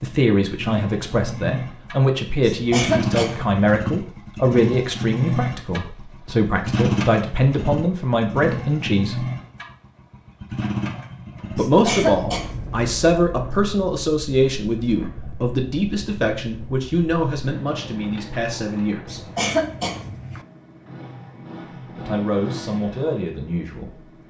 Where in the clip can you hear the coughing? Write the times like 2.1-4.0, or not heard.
2.4-3.6, 11.6-12.9, 19.1-20.4.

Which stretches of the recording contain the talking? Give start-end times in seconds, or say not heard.
0.0-9.3, 11.6-19.2, 21.9-24.1.